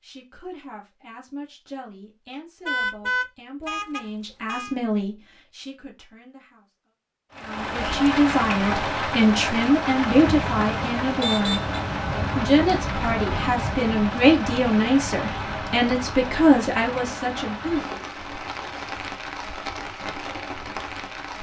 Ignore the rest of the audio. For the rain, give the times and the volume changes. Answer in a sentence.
You can hear the rain from 7.3 to 21.3 s, getting quieter.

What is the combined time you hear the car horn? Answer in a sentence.
You can hear the car horn for 3 seconds altogether.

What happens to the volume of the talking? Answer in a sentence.
The loudness of the talking goes up.